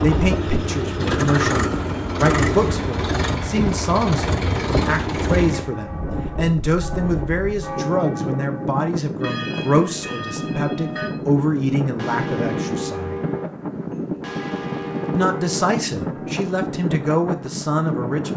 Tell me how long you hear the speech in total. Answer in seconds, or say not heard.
16 s.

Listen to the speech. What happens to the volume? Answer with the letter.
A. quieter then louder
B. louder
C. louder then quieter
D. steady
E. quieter
D.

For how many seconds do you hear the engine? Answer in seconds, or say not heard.
6 s.